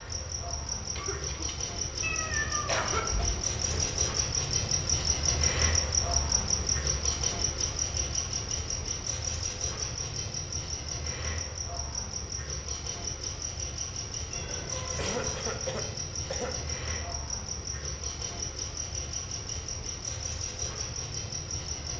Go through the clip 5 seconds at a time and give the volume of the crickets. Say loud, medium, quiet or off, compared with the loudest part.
loud, loud, medium, medium, medium.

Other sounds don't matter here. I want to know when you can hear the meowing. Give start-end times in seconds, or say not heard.
2.0-4.2, 14.3-15.3.